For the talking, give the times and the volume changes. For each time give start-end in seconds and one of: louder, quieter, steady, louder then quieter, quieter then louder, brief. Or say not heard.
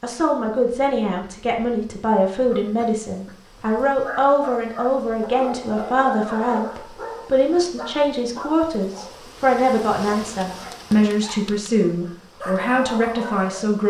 0.0-13.8 steady.